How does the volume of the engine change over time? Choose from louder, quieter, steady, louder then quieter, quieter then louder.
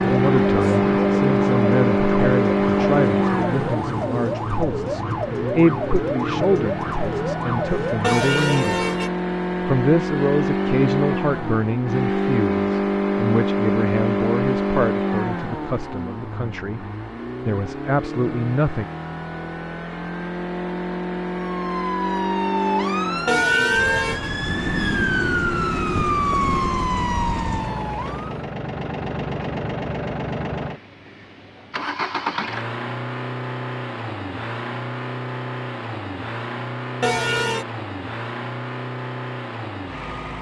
quieter.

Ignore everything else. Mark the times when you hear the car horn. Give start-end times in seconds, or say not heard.
8.0-9.1, 23.2-24.3, 37.0-37.6.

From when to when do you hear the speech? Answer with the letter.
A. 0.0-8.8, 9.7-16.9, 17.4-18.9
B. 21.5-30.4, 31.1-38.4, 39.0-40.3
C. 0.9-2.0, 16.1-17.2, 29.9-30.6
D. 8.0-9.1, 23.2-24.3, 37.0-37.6
A.